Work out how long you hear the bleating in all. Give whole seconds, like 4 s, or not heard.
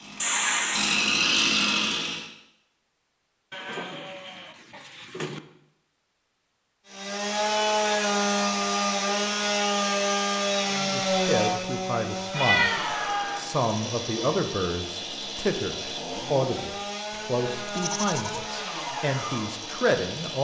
3 s.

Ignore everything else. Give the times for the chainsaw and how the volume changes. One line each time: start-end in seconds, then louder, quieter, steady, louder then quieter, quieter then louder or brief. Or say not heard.
0.0-2.2 brief
6.8-20.3 quieter.